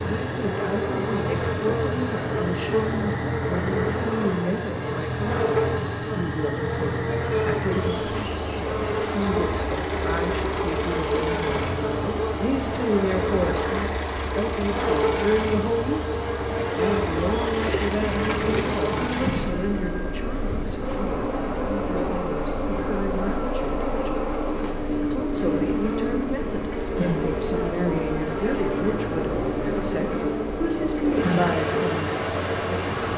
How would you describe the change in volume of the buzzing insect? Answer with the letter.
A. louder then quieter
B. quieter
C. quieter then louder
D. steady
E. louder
D.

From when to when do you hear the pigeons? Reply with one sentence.
You can hear the pigeons from 17.5 to 19.9 s.